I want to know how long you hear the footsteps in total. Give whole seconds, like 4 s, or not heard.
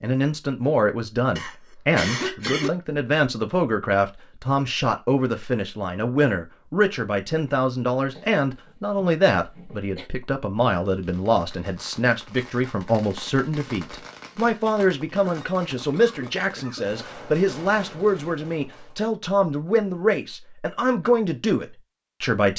not heard.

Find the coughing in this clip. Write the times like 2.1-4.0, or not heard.
1.4-2.7, 8.2-10.1, 15.2-17.0.